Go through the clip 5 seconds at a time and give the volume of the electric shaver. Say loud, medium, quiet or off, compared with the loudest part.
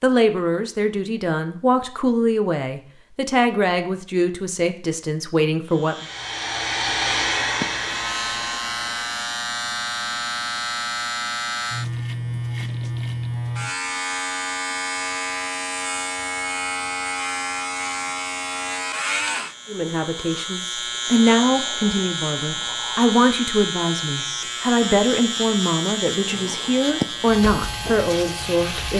off, loud, loud, loud, loud, loud.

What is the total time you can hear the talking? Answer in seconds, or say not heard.
15 s.